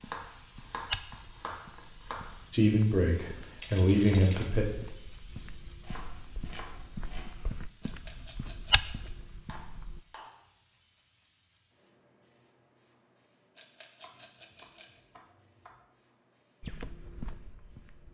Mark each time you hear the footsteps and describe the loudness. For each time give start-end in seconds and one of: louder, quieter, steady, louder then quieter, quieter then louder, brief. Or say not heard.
0.0-10.0 quieter then louder
16.6-18.0 brief.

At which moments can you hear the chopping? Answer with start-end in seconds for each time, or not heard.
0.0-2.4, 5.8-7.3, 9.4-10.4, 14.0-15.8.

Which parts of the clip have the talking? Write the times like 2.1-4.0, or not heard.
2.5-4.7.